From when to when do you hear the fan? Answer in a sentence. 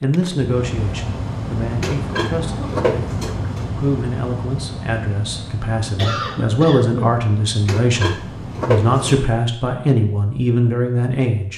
You can hear the fan from 0.0 to 9.3 s.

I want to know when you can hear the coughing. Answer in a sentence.
The coughing can be heard from 2.4 to 2.9 s and from 6.0 to 7.2 s.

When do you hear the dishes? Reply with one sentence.
The dishes can be heard from 1.8 to 3.7 s and from 7.7 to 9.2 s.